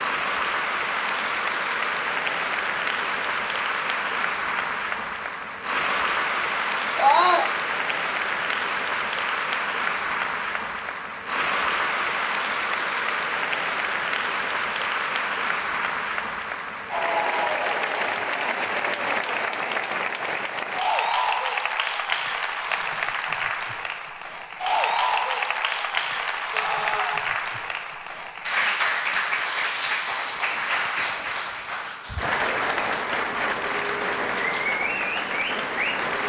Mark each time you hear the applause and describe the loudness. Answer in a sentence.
You can hear the applause from 0.0 to 36.2 s, at a steady volume.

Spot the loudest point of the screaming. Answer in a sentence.
The volume of the screaming peaks at 7 seconds.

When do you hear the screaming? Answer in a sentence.
You can hear the screaming from 7.0 to 7.5 s and from 26.5 to 27.2 s.